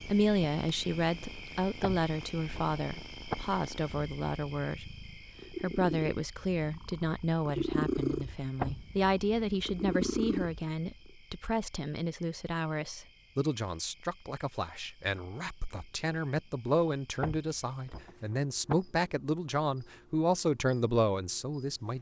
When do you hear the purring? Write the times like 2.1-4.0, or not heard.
0.0-11.1.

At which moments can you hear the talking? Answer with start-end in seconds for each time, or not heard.
0.1-21.9.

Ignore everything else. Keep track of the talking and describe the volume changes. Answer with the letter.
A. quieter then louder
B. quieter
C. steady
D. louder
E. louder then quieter
C.